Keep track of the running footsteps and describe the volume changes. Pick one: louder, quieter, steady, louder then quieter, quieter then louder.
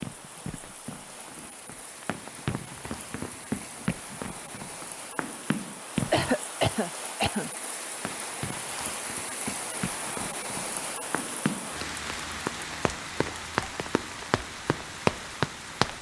louder.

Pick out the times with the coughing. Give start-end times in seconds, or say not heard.
6.1-7.5.